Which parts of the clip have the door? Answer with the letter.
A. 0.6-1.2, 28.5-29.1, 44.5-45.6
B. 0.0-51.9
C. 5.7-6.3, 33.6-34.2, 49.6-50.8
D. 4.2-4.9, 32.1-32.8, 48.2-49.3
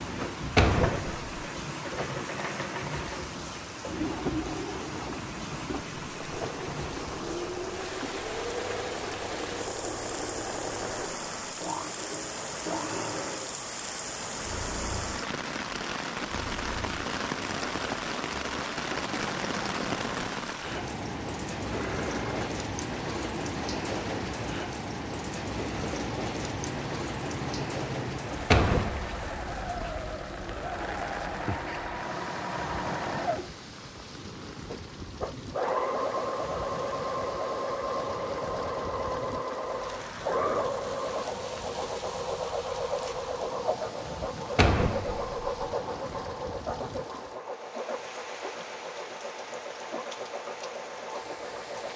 A.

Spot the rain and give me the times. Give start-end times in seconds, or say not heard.
0.0-51.9.